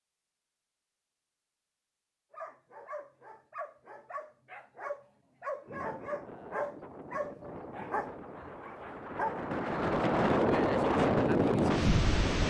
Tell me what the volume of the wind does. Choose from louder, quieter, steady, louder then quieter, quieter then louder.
louder.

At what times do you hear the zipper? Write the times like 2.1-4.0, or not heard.
not heard.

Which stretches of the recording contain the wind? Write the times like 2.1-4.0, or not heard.
5.7-12.4.